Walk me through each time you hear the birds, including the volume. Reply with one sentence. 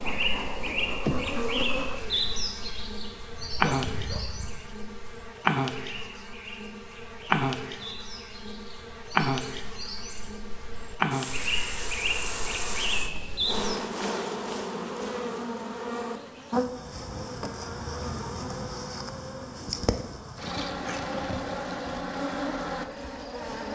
The birds can be heard from 0.0 to 13.9 s, getting quieter then louder.